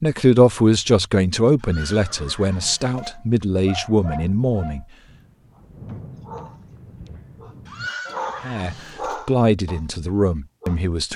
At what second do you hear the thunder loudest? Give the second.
6 s.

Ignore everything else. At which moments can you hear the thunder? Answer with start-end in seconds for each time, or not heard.
5.0-7.9.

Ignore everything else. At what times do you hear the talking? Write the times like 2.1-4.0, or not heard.
0.0-4.8, 8.4-11.1.